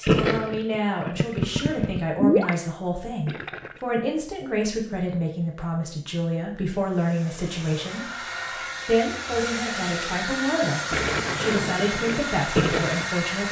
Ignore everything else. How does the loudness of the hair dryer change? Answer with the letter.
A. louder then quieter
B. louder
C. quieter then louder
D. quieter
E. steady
B.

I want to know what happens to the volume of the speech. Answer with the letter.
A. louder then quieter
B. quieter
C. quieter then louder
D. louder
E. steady
E.